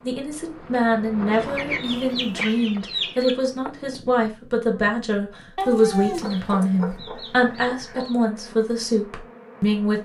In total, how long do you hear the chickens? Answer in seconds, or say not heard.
4 s.